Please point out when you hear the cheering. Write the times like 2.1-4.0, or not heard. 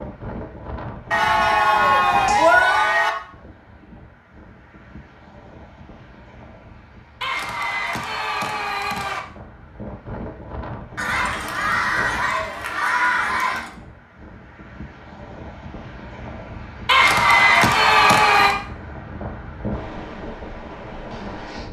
1.1-3.1, 7.2-9.2, 10.9-13.7, 16.9-18.6.